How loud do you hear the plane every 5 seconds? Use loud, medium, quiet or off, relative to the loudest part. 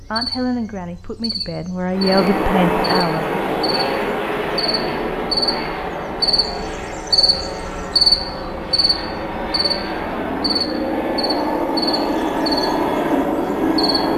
loud, medium, loud.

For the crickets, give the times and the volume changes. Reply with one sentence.
You can hear the crickets from 0.0 to 14.1 s, getting louder then quieter.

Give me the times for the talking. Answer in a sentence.
You can hear the talking from 0.1 to 3.4 s.